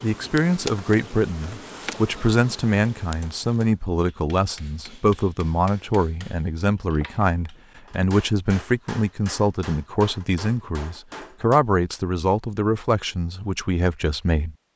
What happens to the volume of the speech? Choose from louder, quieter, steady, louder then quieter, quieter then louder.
steady.